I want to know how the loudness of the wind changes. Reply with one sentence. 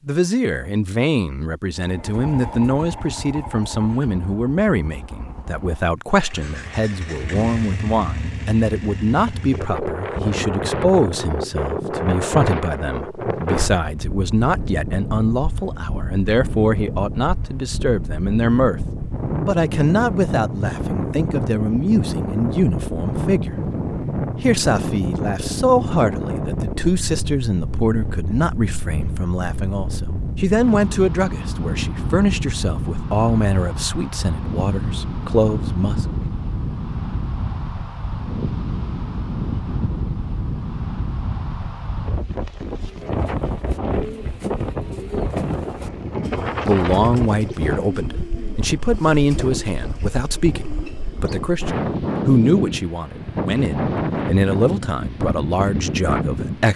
The loudness of the wind stays about the same.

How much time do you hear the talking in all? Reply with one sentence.
You can hear the talking for 46 seconds altogether.